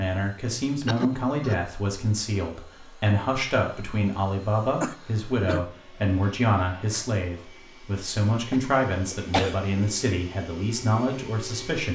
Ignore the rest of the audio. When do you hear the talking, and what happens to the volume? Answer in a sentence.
The talking can be heard from 0.0 to 11.9 s, at a steady volume.